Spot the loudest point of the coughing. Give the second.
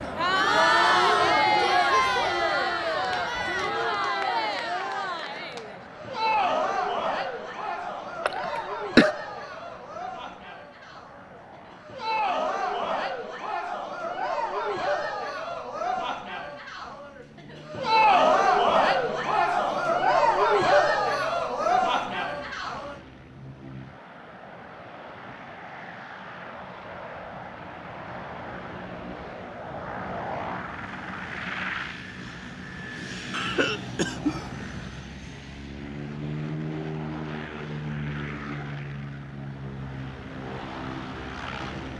9 s.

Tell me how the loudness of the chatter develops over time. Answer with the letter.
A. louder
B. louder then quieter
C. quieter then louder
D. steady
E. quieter
C.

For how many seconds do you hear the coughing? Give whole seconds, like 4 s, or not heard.
2 s.